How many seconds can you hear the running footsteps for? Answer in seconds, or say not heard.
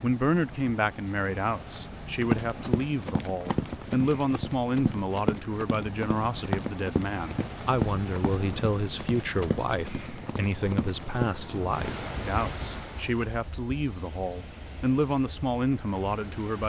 9 s.